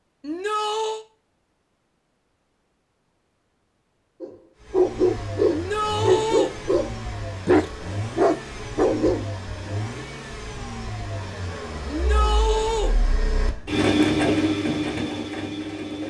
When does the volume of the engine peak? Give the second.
14 s.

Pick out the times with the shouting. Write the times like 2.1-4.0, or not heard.
0.2-1.1, 5.5-6.5, 11.8-12.9.